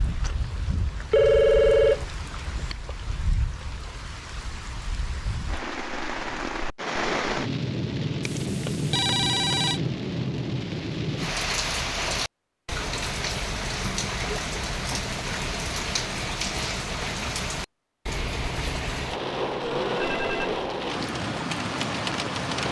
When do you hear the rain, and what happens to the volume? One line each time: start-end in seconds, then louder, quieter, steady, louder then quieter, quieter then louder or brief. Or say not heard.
0.0-22.6 louder.